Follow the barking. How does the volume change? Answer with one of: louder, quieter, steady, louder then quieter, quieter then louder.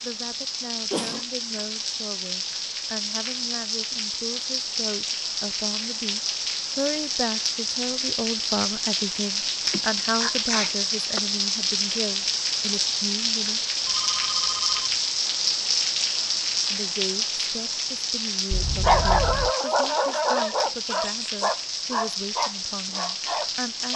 quieter.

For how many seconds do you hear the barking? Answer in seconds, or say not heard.
5 s.